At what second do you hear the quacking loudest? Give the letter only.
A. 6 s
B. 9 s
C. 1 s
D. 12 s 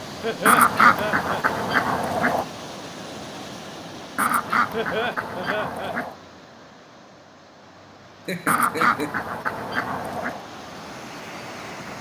C.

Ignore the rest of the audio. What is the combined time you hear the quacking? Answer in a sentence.
You can hear the quacking for 6 seconds altogether.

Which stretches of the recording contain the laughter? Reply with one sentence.
The laughter can be heard from 0.2 to 1.4 s, from 4.7 to 6.0 s and from 8.2 to 9.2 s.